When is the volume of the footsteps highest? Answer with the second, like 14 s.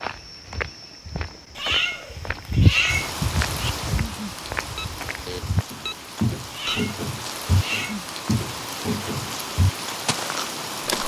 3 s.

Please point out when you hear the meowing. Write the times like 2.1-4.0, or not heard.
1.6-3.7, 6.5-8.0.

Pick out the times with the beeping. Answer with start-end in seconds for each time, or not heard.
4.2-6.8.